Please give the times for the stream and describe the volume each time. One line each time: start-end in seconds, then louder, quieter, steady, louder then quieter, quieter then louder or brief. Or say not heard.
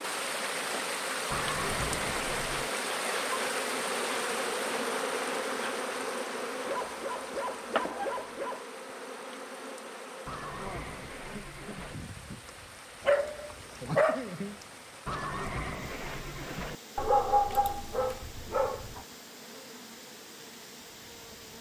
0.0-21.5 quieter.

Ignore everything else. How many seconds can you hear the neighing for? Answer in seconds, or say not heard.
5 s.